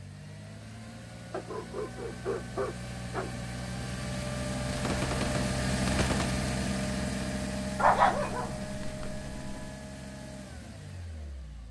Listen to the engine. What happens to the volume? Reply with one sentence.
The loudness of the engine goes up, then down.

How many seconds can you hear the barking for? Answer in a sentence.
You can hear the barking for 4 seconds altogether.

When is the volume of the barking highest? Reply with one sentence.
The volume of the barking peaks at 8 seconds.